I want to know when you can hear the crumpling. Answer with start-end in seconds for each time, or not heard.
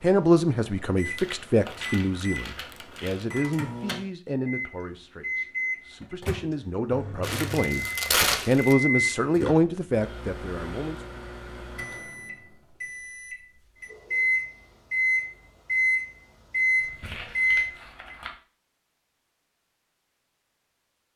1.1-3.2, 7.2-8.8, 16.8-18.4.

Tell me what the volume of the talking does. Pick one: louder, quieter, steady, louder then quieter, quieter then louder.
quieter then louder.